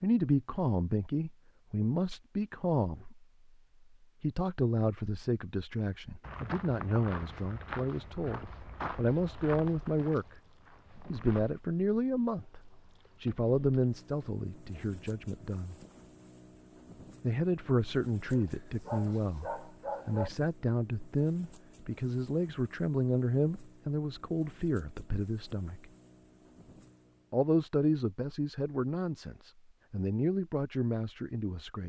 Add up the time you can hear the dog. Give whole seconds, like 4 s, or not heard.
2 s.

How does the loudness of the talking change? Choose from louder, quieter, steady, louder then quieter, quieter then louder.
steady.